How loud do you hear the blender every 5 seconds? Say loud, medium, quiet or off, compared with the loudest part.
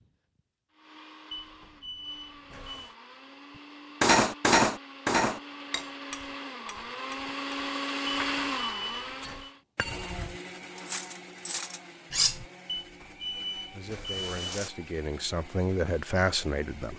quiet, loud, medium, quiet.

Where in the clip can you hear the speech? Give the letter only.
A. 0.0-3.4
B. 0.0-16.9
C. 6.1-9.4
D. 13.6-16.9
D.